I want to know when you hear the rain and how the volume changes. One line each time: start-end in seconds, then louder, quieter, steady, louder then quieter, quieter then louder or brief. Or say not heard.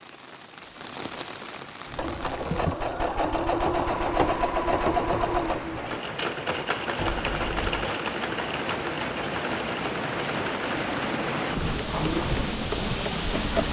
0.0-13.6 louder.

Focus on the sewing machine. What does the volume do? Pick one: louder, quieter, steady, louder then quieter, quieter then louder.
quieter.